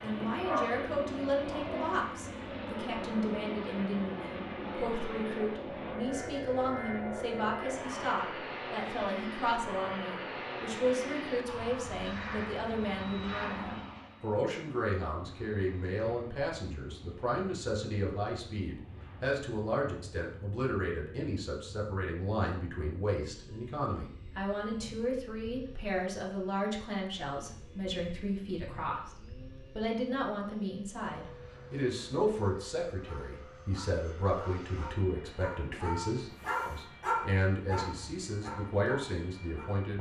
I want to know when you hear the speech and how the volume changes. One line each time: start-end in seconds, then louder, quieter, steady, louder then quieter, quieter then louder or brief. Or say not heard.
0.0-39.9 steady.